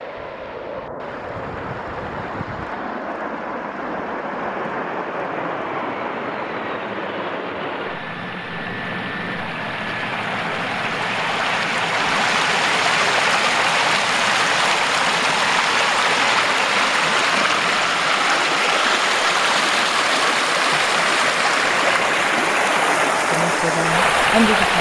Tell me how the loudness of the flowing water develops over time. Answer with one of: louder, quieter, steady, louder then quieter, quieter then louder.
louder.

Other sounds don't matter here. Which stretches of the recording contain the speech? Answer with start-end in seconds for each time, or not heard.
23.3-24.7.